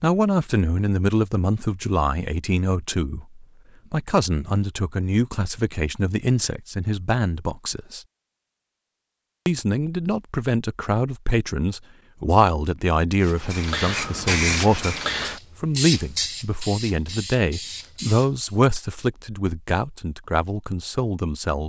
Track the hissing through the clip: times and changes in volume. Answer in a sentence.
The hissing can be heard from 13.2 to 18.6 s, getting quieter.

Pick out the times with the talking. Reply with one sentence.
The talking can be heard from 0.0 to 8.0 s, from 9.4 to 14.9 s and from 15.6 to 21.6 s.